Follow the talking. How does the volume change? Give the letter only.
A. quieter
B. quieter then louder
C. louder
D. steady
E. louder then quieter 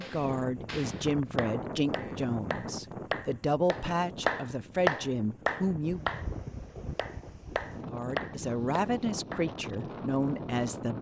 D.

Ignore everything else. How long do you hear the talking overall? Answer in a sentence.
You can hear the talking for 9 seconds altogether.